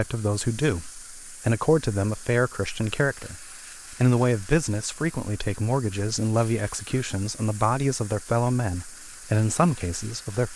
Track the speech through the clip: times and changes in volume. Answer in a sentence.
The speech can be heard from 0.0 to 10.5 s, at a steady volume.